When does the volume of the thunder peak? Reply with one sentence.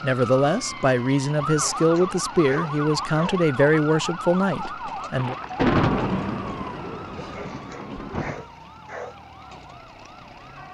The volume of the thunder peaks at 6 seconds.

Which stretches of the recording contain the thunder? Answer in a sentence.
You can hear the thunder from 5.2 to 8.4 s.